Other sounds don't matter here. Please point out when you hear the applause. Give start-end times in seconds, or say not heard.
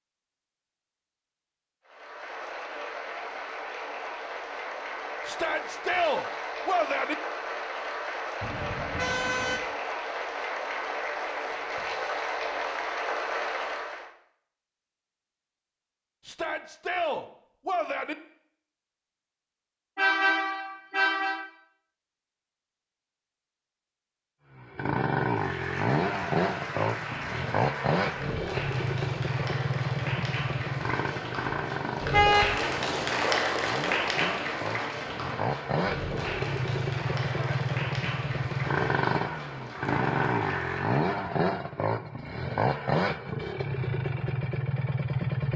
1.9-14.1, 25.2-41.2.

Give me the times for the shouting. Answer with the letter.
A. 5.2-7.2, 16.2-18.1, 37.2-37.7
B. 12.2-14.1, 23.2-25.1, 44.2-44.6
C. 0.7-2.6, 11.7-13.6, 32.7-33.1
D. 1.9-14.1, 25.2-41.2
A.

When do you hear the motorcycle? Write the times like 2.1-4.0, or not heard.
24.6-45.5.